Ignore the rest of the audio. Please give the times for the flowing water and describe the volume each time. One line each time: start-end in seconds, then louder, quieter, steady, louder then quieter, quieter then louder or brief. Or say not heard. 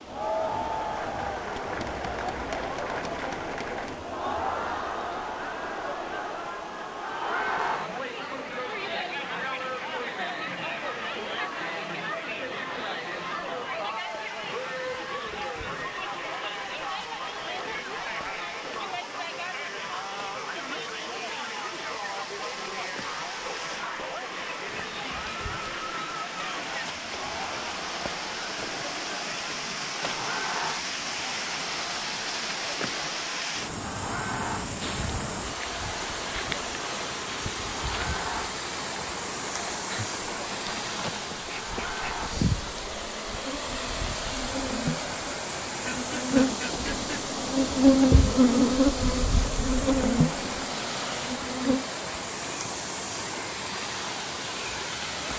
0.0-55.3 louder.